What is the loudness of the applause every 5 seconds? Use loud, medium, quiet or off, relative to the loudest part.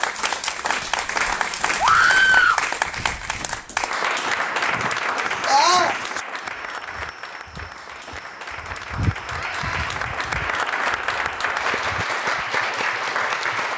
loud, medium, loud.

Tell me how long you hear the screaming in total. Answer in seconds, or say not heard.
2 s.